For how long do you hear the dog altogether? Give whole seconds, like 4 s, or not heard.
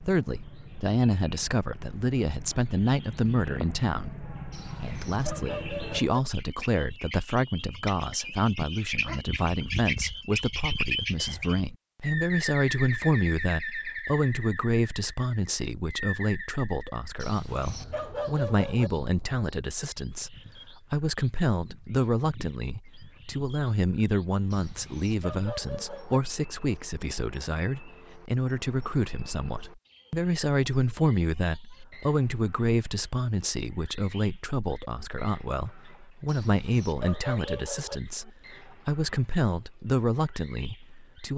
7 s.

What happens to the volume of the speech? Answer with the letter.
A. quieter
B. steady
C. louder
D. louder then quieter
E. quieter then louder
B.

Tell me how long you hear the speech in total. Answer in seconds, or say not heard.
41 s.